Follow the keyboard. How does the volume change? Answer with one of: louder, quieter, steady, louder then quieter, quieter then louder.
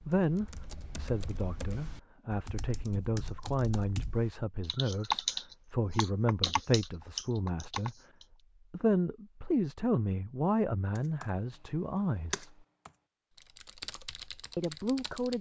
louder then quieter.